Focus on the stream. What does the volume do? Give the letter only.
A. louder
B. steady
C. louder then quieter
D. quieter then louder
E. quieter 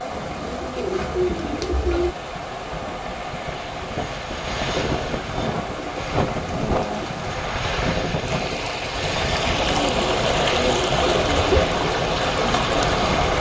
A.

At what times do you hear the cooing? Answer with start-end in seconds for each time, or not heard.
0.1-2.1, 5.5-7.3, 9.5-11.6.